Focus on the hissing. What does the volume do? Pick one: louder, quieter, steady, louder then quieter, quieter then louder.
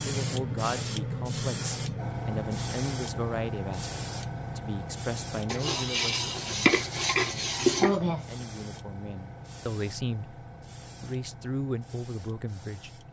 quieter.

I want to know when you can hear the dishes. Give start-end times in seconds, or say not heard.
5.5-8.2.